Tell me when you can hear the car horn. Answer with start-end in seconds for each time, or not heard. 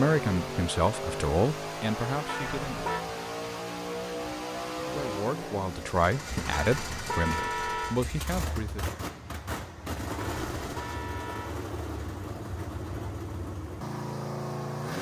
2.2-3.0, 6.5-8.0, 10.2-11.6.